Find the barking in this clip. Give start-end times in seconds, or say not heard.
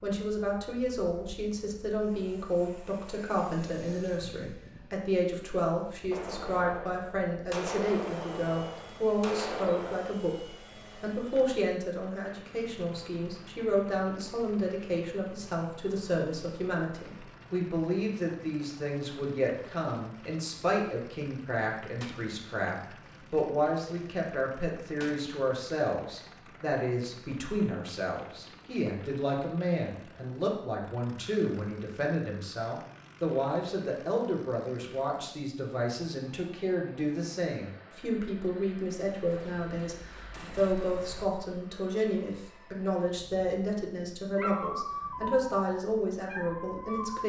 44.4-47.2.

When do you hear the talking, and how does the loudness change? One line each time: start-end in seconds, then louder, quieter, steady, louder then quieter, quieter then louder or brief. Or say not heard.
0.0-47.2 steady.